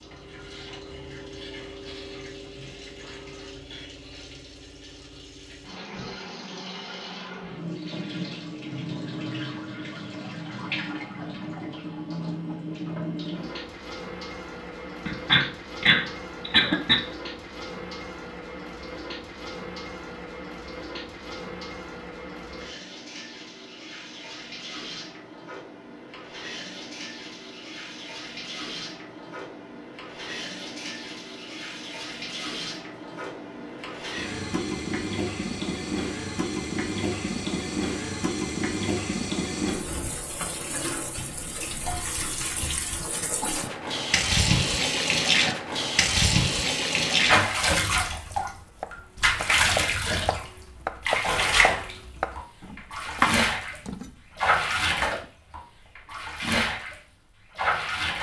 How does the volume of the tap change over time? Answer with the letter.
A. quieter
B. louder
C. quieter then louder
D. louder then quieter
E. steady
B.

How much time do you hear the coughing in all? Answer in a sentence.
You can hear the coughing for 2 seconds altogether.